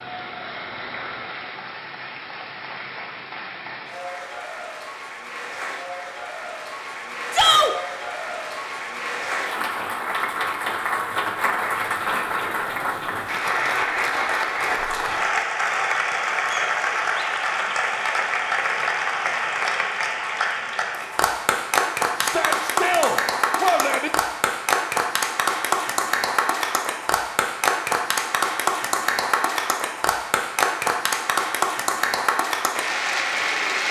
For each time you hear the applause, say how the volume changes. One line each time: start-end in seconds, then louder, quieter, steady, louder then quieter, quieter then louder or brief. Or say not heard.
0.0-33.8 louder.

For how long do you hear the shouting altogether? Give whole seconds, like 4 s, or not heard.
2 s.